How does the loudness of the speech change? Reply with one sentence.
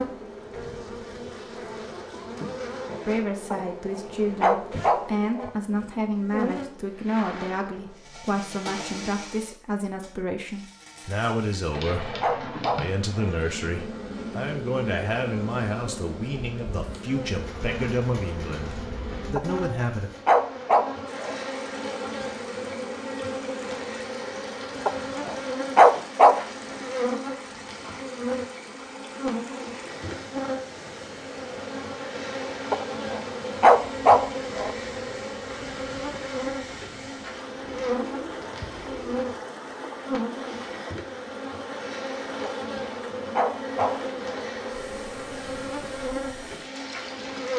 The volume of the speech stays about the same.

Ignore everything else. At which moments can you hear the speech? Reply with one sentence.
The speech can be heard from 3.0 to 20.1 s.